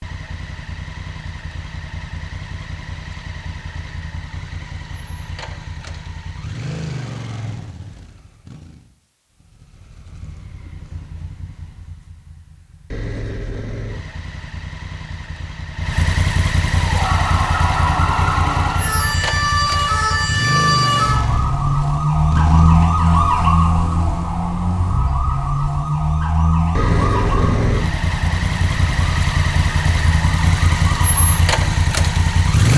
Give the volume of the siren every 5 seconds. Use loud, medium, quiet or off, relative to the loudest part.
off, off, off, loud, loud, medium, medium.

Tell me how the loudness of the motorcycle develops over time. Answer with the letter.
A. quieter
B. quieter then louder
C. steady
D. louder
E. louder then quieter
D.